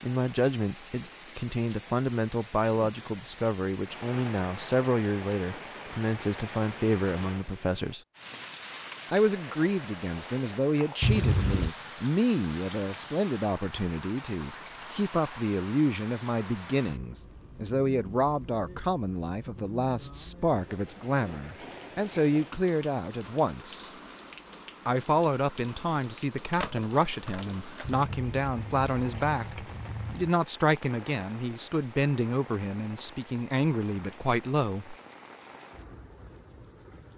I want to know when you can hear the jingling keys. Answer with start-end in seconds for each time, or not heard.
11.0-11.7, 27.9-30.3.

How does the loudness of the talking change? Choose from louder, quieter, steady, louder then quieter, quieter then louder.
steady.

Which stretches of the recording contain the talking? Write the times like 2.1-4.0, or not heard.
0.0-8.0, 9.1-23.9, 24.9-35.0.